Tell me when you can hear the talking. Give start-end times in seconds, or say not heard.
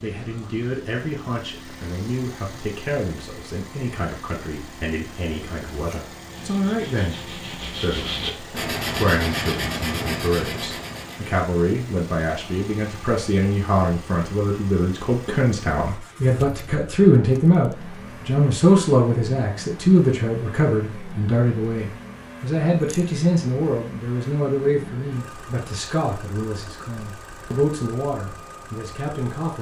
0.0-29.5.